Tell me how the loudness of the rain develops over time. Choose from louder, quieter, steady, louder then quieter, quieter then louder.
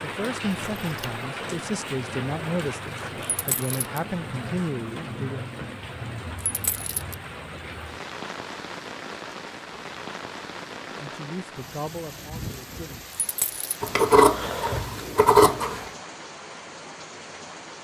quieter.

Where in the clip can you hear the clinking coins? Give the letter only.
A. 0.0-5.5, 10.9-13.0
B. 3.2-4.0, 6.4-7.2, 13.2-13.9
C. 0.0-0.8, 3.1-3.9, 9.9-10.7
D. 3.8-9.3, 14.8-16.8
B.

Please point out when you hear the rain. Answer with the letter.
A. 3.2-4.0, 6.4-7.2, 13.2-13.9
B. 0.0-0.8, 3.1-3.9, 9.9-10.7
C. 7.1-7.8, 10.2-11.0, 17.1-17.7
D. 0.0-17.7
D.